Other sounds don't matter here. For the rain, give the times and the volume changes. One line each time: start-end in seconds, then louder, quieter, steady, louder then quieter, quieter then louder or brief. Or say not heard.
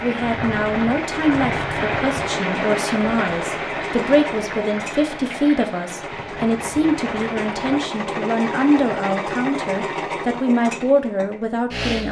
0.0-7.8 quieter.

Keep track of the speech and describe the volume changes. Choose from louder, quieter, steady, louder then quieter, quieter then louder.
steady.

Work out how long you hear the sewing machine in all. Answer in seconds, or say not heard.
12 s.